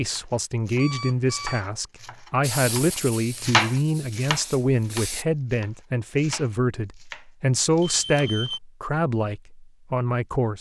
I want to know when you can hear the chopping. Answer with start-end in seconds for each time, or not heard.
0.1-8.3.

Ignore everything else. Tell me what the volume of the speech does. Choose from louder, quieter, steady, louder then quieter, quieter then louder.
steady.